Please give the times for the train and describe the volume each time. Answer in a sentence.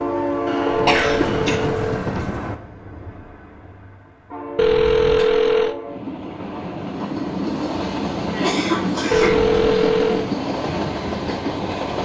You can hear the train from 0.0 to 12.0 s, getting quieter then louder.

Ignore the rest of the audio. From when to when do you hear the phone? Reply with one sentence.
You can hear the phone from 0.7 to 2.0 s, from 4.5 to 5.8 s and from 9.1 to 10.3 s.